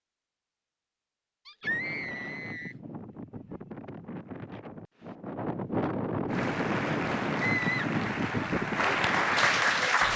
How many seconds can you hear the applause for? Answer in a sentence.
The applause can be heard for 4 seconds in total.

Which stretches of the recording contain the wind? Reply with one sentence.
The wind can be heard from 1.6 to 10.1 s.